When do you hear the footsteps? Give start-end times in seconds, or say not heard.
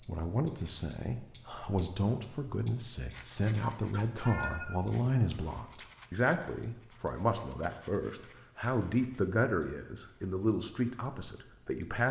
not heard.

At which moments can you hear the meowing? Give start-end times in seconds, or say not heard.
3.5-4.8.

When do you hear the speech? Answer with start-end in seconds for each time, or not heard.
0.1-12.0.